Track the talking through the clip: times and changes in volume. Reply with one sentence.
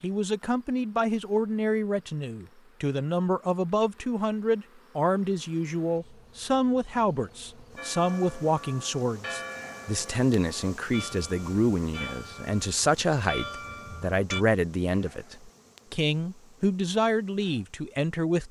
You can hear the talking from 0.0 to 18.4 s, at a steady volume.